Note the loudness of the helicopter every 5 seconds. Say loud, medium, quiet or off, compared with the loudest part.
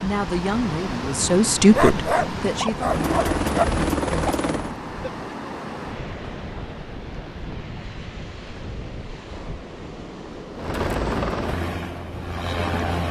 loud, off, loud.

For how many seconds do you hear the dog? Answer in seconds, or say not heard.
2 s.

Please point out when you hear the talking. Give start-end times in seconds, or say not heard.
0.0-2.9.